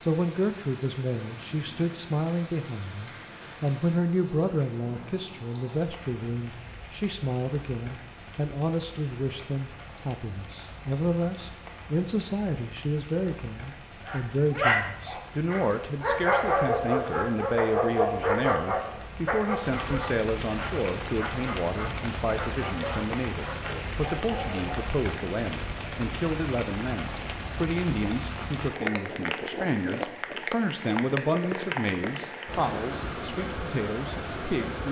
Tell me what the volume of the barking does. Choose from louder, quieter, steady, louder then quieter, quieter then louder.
quieter.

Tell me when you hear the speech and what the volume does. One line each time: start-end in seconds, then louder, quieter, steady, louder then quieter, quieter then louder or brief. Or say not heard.
0.0-34.8 steady.